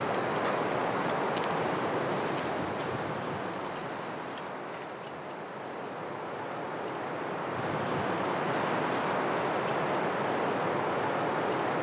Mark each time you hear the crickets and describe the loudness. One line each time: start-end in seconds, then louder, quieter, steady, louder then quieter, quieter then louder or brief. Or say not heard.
0.0-7.8 quieter.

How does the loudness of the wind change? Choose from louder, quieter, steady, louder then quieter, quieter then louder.
quieter then louder.